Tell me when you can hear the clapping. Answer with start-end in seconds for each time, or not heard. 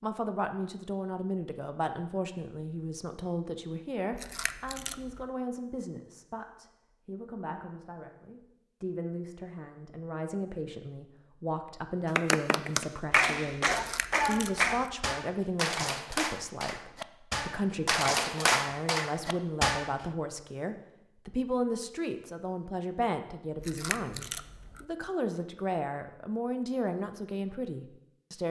12.1-19.9.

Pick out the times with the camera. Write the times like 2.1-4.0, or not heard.
4.1-5.2, 13.7-14.9, 23.6-24.9.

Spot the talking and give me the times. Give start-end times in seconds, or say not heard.
0.0-28.4.